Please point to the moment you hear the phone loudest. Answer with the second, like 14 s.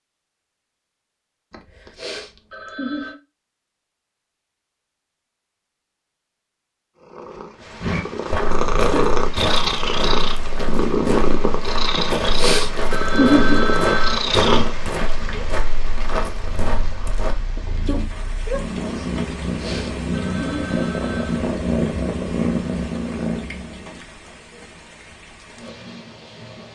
13 s.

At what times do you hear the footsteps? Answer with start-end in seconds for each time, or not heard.
7.8-17.4.